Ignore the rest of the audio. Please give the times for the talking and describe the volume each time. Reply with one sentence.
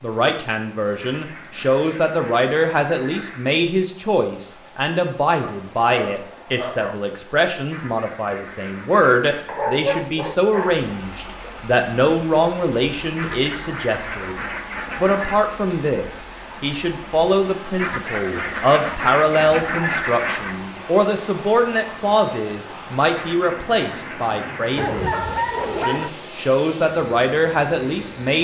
The talking can be heard from 0.0 to 28.3 s, at a steady volume.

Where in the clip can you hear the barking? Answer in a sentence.
You can hear the barking from 5.4 to 7.0 s, from 9.4 to 10.8 s and from 24.8 to 26.1 s.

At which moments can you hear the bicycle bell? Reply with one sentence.
The bicycle bell can't be heard in this clip.